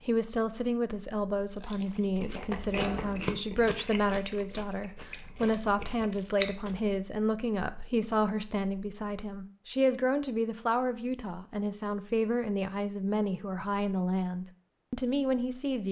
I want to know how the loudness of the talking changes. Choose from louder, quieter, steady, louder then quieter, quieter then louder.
steady.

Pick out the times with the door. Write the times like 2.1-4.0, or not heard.
2.7-3.3.